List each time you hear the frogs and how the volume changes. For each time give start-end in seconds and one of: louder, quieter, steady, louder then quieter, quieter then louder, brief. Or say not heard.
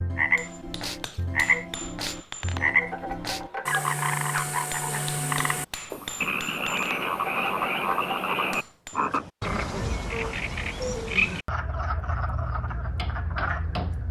0.0-14.0 steady.